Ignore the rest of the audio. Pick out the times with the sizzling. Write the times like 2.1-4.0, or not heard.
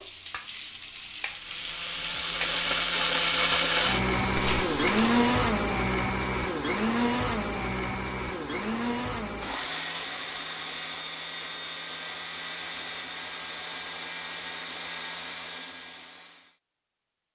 0.0-5.5.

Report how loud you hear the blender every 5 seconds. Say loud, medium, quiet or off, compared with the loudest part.
loud, loud, medium, quiet.